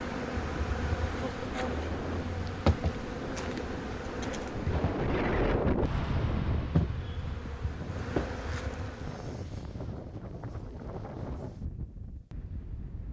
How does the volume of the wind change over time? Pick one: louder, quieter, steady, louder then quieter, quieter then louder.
louder then quieter.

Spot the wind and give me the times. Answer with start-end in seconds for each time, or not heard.
0.0-13.0.